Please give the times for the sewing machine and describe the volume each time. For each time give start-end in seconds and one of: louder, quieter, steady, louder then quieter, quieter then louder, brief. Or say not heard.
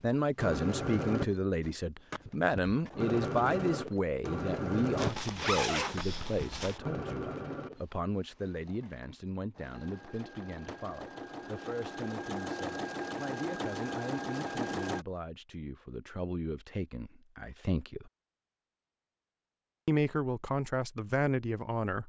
0.3-15.1 quieter then louder.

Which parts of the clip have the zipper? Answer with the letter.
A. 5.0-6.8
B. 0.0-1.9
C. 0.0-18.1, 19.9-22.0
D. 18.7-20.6
A.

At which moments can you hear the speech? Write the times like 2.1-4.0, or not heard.
0.0-18.1, 19.9-22.0.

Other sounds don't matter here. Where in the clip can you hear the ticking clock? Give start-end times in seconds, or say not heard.
not heard.